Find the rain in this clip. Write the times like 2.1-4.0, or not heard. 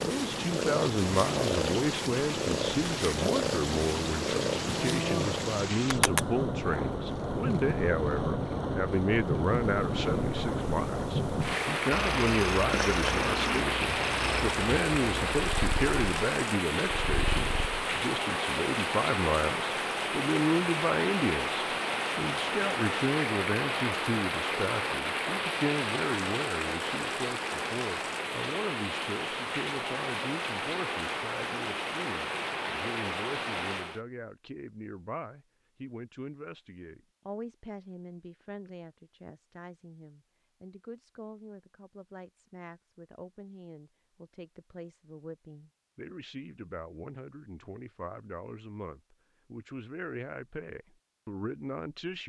0.0-34.0.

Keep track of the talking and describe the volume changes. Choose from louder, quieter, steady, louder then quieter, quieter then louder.
quieter.